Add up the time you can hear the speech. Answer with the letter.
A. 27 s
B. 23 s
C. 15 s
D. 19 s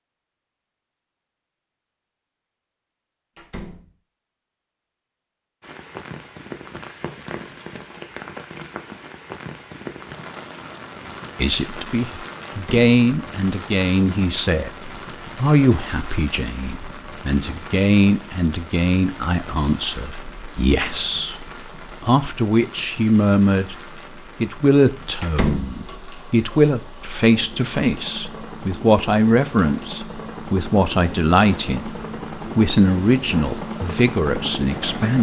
B.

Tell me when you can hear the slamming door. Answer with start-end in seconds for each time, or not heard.
3.4-3.9, 12.5-12.9, 25.2-25.8.